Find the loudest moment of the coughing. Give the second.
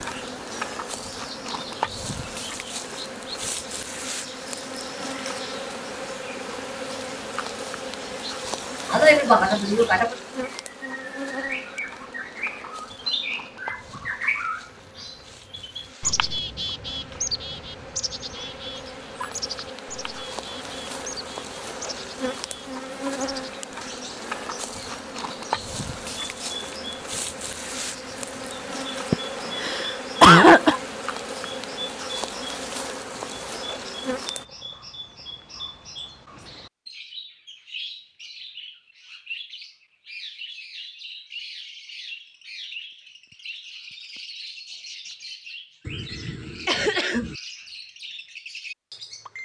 30 s.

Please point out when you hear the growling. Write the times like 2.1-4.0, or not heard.
not heard.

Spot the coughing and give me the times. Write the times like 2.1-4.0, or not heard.
8.9-10.2, 29.1-30.8, 45.9-47.4.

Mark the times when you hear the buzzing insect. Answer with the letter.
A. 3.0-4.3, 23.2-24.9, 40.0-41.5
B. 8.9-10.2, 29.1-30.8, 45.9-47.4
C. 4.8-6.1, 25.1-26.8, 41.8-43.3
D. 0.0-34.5
D.